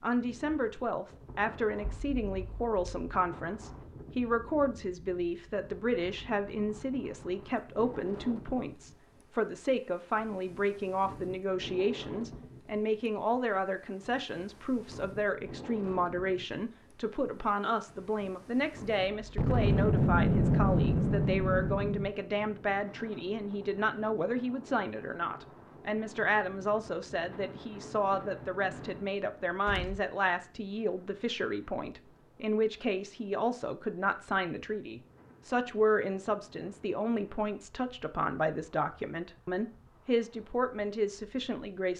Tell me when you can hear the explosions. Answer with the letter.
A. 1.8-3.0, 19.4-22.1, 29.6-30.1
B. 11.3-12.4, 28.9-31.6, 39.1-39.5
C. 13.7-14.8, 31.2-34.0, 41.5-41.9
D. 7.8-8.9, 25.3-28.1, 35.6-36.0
A.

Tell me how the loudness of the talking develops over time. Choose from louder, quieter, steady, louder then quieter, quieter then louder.
steady.